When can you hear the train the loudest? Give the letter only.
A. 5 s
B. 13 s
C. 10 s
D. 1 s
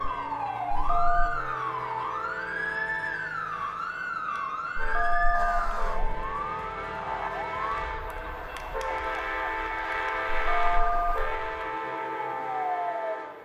C.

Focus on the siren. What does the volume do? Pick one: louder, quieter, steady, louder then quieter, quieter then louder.
quieter then louder.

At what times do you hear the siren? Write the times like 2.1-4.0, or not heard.
0.0-13.4.